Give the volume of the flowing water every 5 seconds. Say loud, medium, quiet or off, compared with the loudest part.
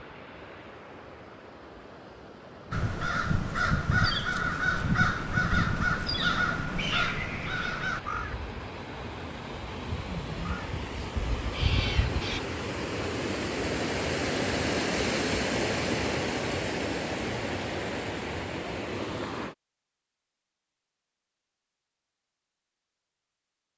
quiet, medium, loud, loud, off.